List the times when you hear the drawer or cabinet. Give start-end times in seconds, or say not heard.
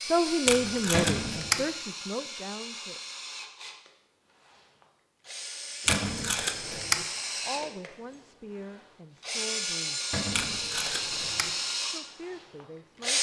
0.9-1.4, 5.8-6.3, 10.1-10.6.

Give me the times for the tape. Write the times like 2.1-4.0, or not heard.
0.5-1.6, 5.8-7.0, 10.3-11.5.